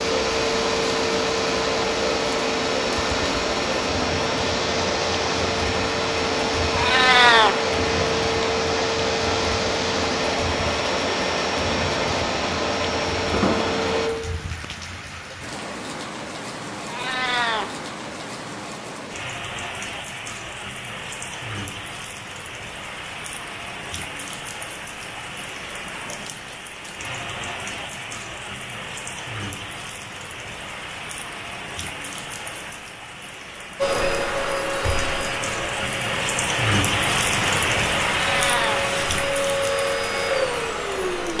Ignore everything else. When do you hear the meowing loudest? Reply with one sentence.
The volume of the meowing peaks at 7 seconds.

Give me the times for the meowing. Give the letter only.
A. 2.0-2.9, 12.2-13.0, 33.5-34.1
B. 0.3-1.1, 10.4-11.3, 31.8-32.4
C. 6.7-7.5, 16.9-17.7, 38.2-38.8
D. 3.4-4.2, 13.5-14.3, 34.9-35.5
C.